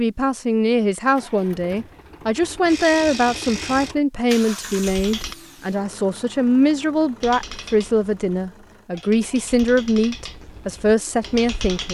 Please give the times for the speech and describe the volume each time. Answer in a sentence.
You can hear the speech from 0.0 to 11.8 s, at a steady volume.